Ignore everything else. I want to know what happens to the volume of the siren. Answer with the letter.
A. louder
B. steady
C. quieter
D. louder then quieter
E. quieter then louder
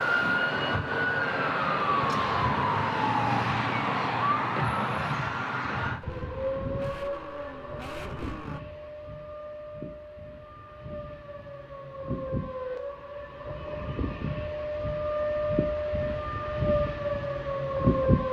E.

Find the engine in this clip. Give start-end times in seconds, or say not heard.
6.0-8.6.